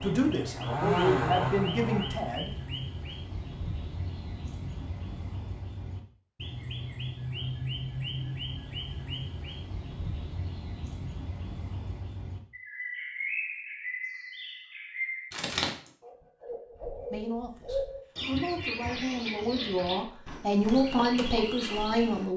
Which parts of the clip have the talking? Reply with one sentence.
You can hear the talking from 0.0 to 2.5 s and from 17.1 to 22.3 s.